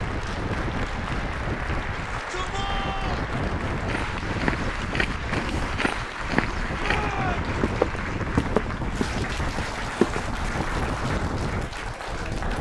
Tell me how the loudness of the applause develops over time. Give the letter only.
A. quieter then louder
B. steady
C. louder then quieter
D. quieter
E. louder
B.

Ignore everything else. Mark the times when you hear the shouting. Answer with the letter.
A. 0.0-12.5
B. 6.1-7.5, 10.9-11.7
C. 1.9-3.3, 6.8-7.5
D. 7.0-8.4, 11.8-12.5
C.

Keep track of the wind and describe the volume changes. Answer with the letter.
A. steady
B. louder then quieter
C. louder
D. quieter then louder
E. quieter
A.